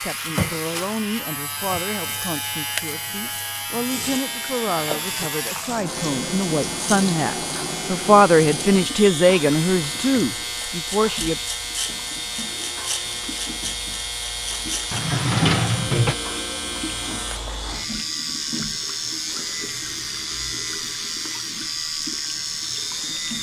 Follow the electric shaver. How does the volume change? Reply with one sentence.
The loudness of the electric shaver stays about the same.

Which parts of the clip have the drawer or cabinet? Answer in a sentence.
The drawer or cabinet can be heard from 14.9 to 16.1 s.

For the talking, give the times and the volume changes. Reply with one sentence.
You can hear the talking from 0.0 to 11.4 s, getting louder.